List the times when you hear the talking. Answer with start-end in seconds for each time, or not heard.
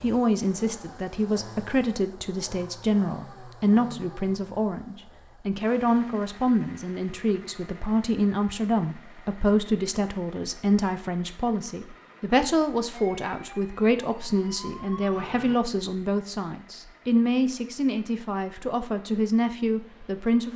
0.0-20.5.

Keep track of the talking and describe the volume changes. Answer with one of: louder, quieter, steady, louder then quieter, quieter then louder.
steady.